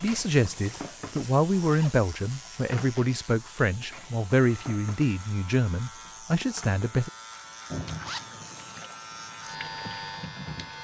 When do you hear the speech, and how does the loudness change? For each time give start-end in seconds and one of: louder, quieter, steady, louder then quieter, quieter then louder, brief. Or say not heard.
0.0-7.1 steady.